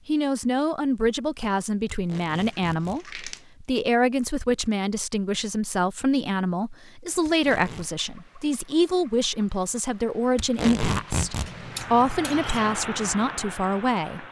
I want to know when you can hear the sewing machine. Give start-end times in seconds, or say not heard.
not heard.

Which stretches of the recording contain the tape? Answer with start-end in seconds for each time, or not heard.
1.9-3.0, 7.2-7.9, 10.3-11.5.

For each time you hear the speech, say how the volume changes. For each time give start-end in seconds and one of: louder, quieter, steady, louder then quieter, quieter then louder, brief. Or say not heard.
0.1-14.2 steady.